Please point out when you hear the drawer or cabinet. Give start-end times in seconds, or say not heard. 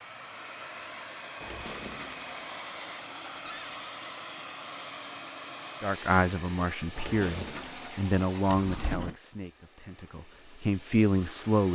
3.5-3.9, 8.4-9.2.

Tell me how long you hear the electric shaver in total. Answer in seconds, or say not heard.
not heard.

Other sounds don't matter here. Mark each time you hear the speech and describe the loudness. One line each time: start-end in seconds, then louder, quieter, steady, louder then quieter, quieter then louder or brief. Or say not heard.
5.8-11.7 quieter then louder.